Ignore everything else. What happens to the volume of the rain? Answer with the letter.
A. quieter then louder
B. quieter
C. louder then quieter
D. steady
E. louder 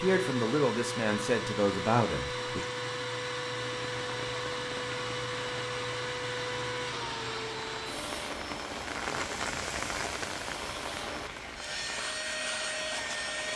C.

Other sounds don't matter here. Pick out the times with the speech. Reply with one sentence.
The speech can be heard from 0.0 to 2.6 s.